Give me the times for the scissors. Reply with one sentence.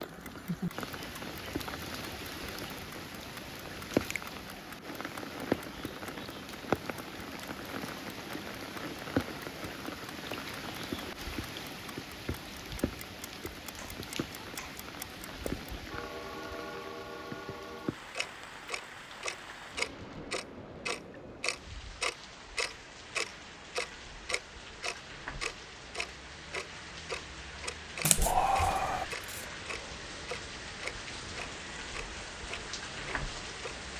The scissors can be heard from 28.0 to 29.4 s.